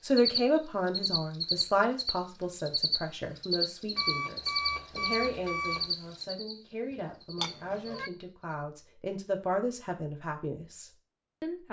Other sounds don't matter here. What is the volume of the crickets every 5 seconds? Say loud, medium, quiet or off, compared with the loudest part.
loud, medium, off.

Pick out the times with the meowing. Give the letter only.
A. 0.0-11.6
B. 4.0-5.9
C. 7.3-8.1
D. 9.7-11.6
C.